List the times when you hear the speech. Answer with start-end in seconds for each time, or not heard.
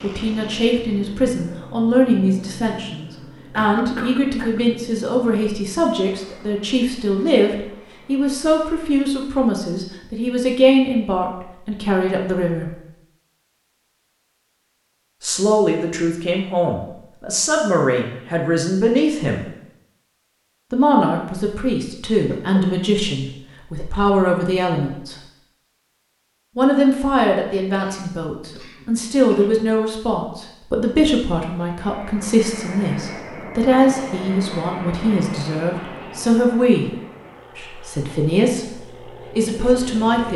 0.0-12.8, 15.2-19.4, 20.7-25.1, 26.6-36.9, 37.5-40.3.